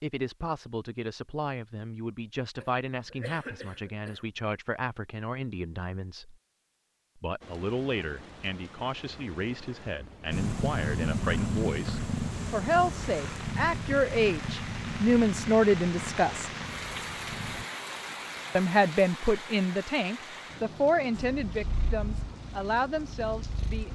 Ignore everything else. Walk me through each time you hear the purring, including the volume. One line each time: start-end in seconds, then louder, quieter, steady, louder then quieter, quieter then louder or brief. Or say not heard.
10.3-17.6 quieter
21.1-23.9 brief.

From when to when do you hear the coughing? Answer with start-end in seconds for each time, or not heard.
2.6-4.2.